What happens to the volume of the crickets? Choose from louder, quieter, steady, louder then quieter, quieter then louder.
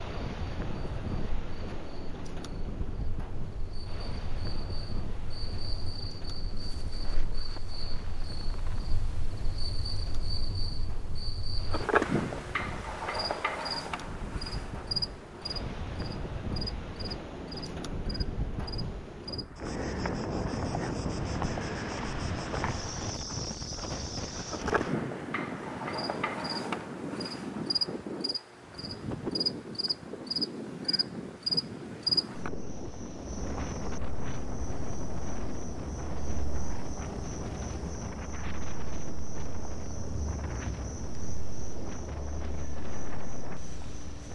louder then quieter.